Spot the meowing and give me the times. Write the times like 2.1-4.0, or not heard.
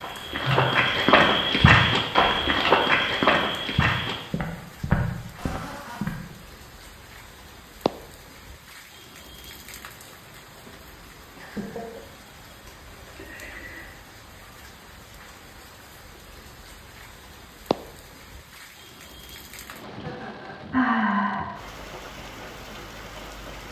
not heard.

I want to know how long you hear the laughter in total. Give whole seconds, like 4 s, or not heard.
2 s.